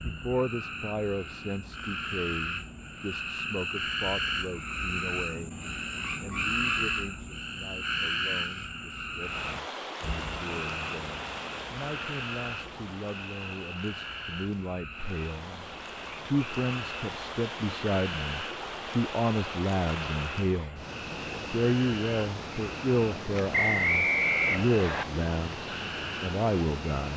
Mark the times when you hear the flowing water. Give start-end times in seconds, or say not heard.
9.2-27.1.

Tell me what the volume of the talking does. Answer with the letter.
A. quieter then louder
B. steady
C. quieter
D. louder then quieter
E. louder
A.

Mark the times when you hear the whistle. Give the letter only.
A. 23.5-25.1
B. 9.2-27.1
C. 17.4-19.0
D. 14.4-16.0
A.